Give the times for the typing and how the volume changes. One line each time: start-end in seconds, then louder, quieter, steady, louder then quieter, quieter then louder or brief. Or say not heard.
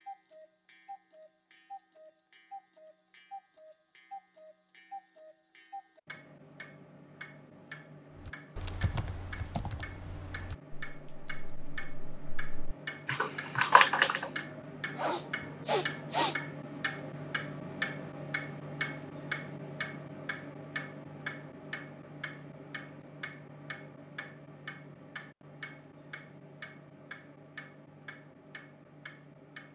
8.2-14.4 quieter then louder.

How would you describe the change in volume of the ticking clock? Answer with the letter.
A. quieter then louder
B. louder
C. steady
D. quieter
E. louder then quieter
E.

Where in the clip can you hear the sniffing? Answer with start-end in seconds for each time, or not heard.
14.3-16.4.